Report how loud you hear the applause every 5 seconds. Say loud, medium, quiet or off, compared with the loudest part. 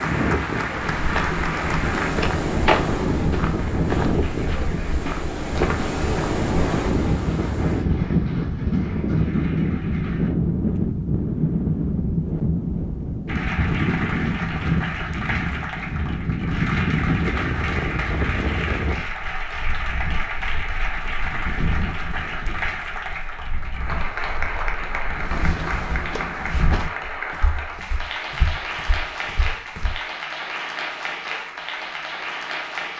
loud, quiet, loud, loud, loud, loud, loud.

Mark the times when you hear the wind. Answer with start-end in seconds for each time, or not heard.
0.0-25.7.